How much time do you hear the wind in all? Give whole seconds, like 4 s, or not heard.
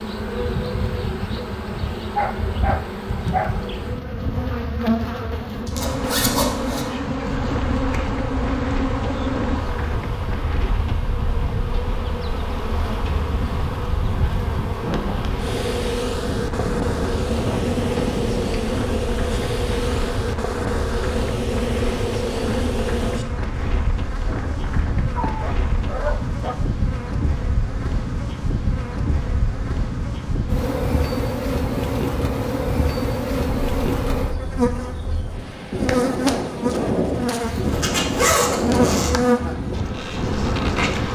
34 s.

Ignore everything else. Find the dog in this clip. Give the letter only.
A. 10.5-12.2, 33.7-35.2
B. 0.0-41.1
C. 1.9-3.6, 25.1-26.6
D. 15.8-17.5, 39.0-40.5
C.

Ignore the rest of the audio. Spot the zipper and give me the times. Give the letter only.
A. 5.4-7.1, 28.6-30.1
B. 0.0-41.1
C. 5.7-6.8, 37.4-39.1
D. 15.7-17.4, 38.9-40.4
C.